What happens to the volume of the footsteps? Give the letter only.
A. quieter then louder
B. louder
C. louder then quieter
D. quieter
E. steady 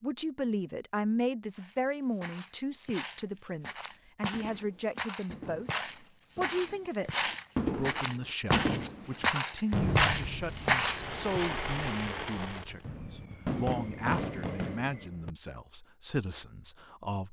B.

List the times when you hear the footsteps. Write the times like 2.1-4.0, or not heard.
1.6-11.5.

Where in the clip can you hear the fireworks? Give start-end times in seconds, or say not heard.
4.3-15.3.